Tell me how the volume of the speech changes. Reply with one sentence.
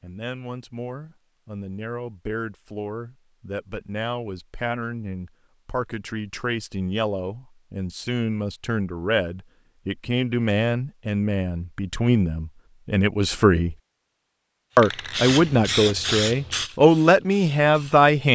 The volume of the speech goes up.